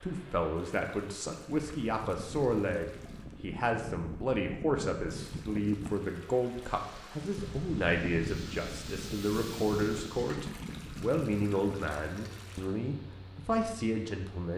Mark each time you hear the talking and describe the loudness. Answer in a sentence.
You can hear the talking from 0.0 to 14.5 s, at a steady volume.